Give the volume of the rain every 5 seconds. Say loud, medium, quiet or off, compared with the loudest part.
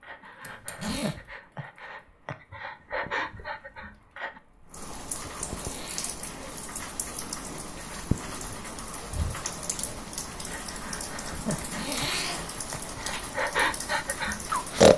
quiet, loud, loud.